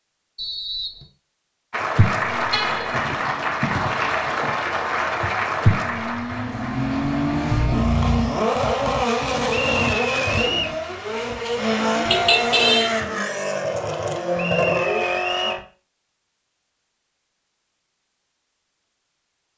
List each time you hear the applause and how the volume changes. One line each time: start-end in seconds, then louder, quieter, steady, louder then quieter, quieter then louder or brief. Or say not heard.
1.7-7.7 quieter.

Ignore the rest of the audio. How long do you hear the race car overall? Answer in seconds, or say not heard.
13 s.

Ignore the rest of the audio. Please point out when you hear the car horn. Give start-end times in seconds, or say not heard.
2.5-3.0, 12.1-12.9.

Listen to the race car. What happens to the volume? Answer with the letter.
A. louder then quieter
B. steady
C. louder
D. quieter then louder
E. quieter
C.